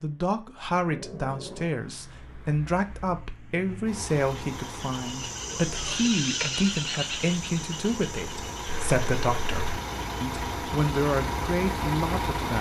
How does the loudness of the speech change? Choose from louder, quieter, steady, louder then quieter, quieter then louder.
steady.